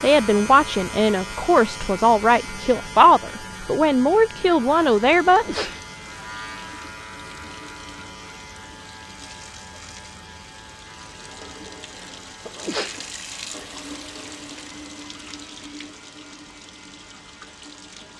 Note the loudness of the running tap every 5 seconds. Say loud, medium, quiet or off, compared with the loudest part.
off, medium, loud, loud.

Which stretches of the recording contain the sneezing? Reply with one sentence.
You can hear the sneezing from 5.2 to 5.8 s and from 12.4 to 13.0 s.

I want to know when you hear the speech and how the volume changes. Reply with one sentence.
You can hear the speech from 0.0 to 5.7 s, at a steady volume.